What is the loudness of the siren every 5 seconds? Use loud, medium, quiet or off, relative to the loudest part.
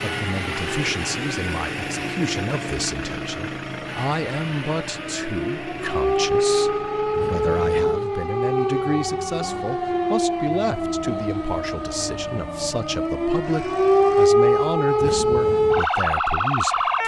quiet, loud, loud, loud.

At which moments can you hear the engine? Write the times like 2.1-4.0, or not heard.
0.0-14.3.